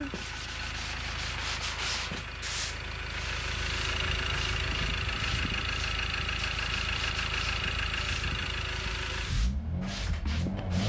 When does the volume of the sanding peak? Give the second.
2 s.